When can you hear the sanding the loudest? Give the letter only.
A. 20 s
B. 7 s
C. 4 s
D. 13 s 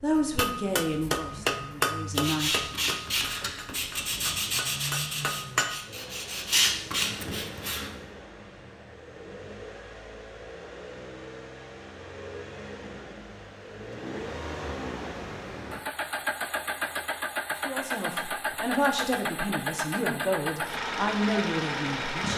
B.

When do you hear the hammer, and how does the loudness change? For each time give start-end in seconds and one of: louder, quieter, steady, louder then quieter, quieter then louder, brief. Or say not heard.
0.1-5.8 quieter then louder.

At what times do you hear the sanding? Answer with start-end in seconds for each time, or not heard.
2.1-7.9.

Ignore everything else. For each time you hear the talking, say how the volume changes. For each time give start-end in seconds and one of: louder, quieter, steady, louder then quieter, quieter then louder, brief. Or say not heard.
0.0-2.7 brief
17.6-22.3 steady.